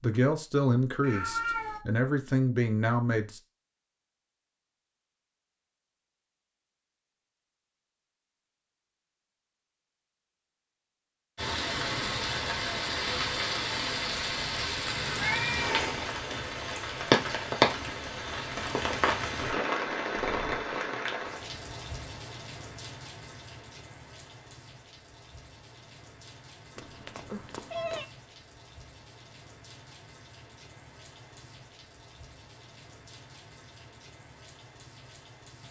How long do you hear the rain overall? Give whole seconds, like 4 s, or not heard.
24 s.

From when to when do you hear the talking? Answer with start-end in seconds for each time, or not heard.
0.0-3.4.